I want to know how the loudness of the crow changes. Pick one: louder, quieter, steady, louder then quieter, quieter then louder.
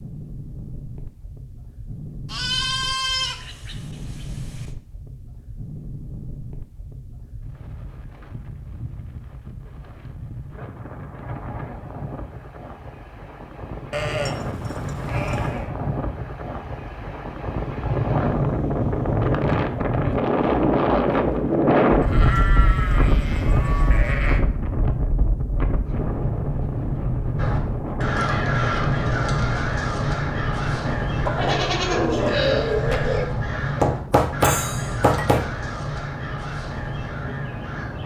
quieter.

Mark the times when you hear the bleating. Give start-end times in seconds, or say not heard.
2.2-4.7, 13.9-15.7, 22.0-24.4, 31.2-33.2.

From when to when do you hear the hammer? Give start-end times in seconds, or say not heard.
33.8-35.5.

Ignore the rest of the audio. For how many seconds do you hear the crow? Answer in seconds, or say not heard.
11 s.